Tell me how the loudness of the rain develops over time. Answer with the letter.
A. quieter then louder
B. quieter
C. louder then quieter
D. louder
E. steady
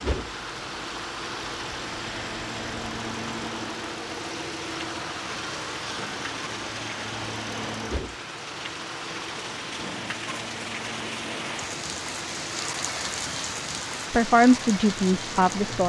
D.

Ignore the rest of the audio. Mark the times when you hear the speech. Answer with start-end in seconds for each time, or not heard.
14.1-15.8.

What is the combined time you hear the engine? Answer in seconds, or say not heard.
16 s.